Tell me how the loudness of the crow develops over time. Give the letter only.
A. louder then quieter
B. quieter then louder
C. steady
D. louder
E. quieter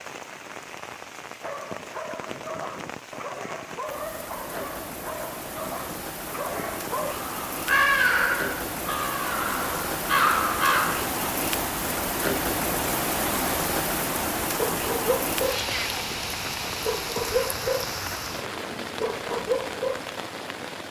B.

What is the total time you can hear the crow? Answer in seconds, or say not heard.
4 s.